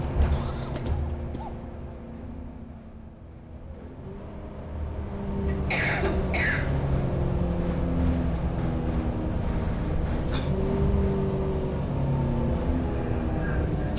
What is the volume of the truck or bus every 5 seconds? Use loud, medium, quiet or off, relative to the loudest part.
medium, loud, loud.